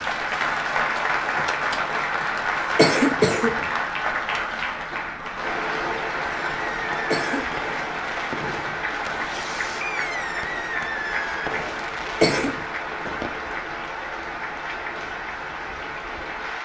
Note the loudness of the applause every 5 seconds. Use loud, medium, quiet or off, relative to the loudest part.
loud, loud, medium, medium.